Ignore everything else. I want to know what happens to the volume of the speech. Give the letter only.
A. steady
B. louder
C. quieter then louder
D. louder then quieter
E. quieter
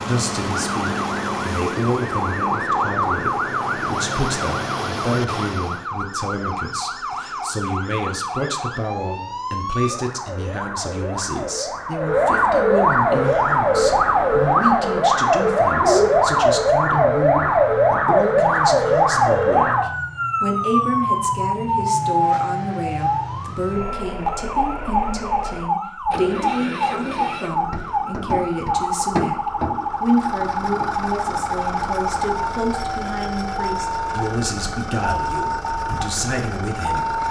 A.